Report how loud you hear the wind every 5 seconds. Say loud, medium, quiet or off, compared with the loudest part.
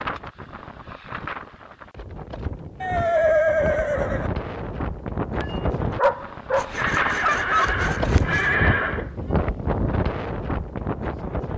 medium, loud, loud.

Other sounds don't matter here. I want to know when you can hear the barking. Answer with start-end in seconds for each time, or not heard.
5.4-7.8.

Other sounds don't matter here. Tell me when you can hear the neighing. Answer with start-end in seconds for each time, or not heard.
2.8-4.3, 6.8-9.1.